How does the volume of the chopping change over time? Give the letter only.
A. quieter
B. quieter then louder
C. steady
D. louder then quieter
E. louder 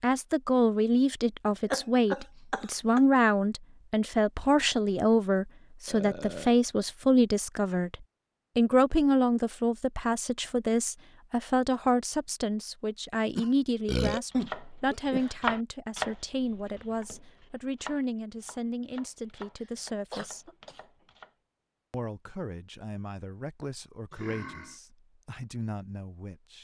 A.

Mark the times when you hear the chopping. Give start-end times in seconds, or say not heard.
14.3-21.3.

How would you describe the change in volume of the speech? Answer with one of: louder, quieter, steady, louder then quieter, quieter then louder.
quieter.